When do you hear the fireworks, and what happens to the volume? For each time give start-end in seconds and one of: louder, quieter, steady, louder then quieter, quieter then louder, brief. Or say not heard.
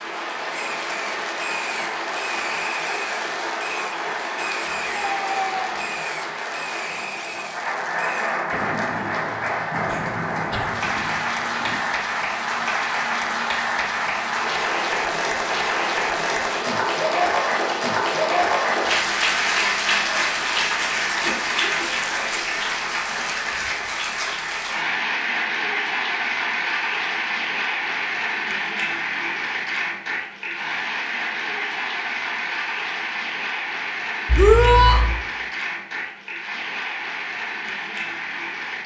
0.5-11.8 steady.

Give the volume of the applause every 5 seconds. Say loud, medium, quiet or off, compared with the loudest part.
medium, medium, loud, loud, loud, loud, medium, medium.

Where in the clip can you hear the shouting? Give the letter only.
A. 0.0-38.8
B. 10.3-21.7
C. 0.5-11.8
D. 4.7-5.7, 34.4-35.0
D.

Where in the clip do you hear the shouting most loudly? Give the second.
35 s.